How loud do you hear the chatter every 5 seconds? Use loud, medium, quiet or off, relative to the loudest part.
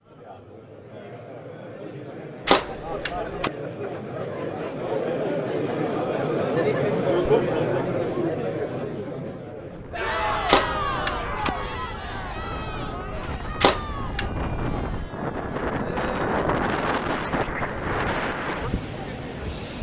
medium, loud, medium, quiet.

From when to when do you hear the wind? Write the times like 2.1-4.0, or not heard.
9.6-19.7.